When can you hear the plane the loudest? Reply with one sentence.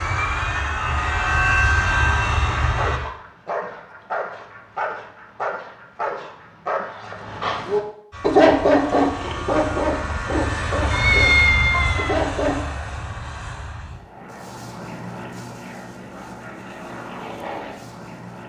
The volume of the plane peaks at 2 seconds.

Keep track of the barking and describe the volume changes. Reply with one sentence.
The loudness of the barking goes up, then down.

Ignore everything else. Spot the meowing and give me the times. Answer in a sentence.
The meowing can be heard from 10.9 to 12.2 s.